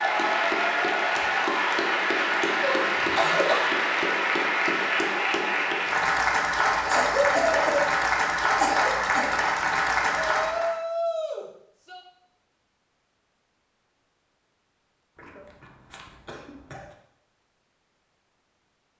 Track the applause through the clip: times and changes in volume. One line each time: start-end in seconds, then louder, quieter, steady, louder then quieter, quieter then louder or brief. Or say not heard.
0.0-10.8 steady.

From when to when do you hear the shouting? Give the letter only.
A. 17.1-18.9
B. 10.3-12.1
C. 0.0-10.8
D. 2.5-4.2
B.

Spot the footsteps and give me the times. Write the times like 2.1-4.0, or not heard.
not heard.